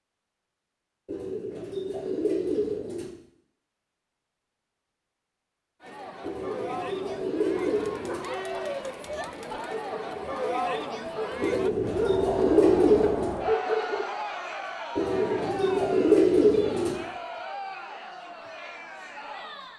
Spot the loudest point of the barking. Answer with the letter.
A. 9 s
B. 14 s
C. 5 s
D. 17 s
B.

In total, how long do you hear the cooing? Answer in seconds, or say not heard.
8 s.